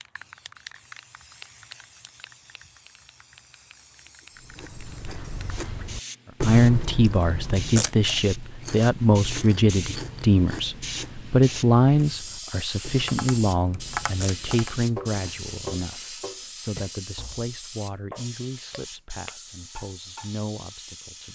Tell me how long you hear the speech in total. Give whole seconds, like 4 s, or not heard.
15 s.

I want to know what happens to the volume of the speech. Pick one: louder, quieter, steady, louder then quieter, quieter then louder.
quieter.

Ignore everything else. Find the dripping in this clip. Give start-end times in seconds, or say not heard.
not heard.